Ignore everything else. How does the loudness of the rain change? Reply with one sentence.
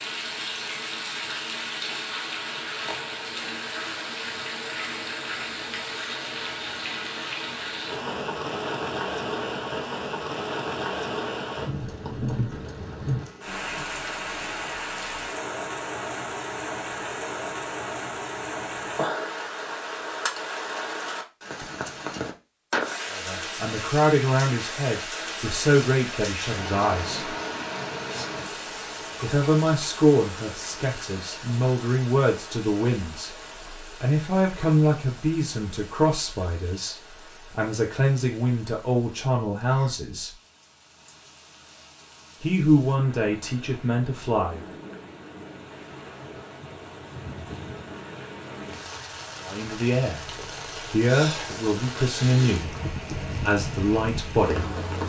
The loudness of the rain goes down, then up.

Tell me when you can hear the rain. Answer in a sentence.
You can hear the rain from 0.0 to 55.0 s.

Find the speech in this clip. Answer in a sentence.
The speech can be heard from 23.1 to 27.4 s, from 29.2 to 40.3 s, from 42.4 to 44.6 s, from 49.4 to 50.2 s, from 50.9 to 52.8 s and from 53.4 to 54.6 s.